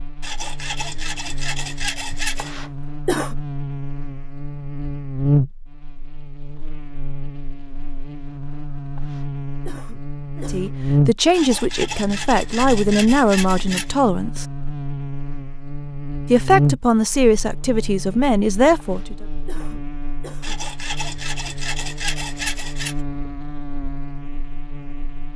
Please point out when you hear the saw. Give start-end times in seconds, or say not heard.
0.2-2.5, 11.3-14.0, 20.4-22.9.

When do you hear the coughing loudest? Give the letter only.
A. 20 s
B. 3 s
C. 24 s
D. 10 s
B.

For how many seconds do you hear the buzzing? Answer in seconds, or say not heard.
25 s.